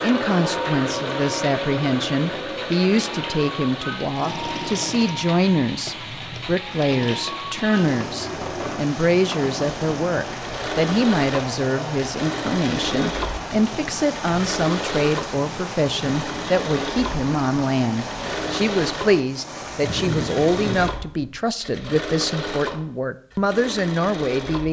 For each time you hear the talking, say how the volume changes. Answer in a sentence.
You can hear the talking from 0.0 to 24.6 s, at a steady volume.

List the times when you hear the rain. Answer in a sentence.
You can hear the rain from 0.0 to 20.9 s.